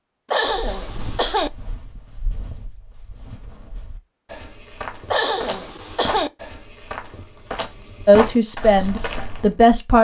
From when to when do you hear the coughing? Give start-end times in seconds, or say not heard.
0.3-1.5, 5.1-6.3.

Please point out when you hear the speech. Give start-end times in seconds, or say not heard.
8.1-9.9.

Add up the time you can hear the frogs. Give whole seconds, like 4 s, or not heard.
not heard.